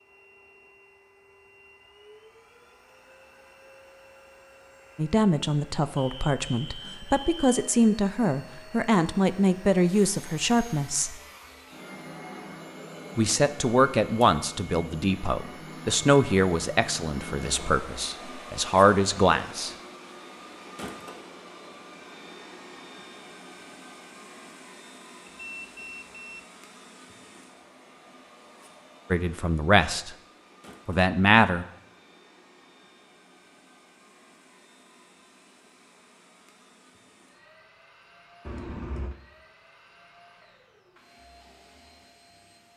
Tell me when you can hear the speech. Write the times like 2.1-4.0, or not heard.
5.0-11.2, 13.2-19.7, 29.1-30.1, 30.9-31.6.